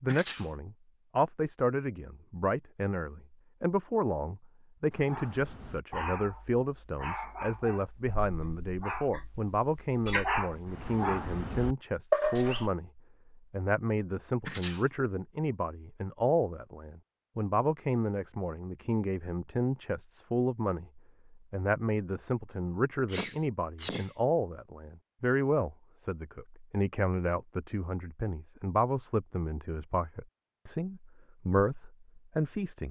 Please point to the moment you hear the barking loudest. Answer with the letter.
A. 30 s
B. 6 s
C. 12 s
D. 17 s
C.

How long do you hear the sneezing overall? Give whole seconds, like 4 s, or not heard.
2 s.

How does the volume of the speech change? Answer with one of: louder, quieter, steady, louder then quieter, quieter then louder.
steady.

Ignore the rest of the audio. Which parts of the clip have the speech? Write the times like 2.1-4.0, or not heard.
0.0-32.8.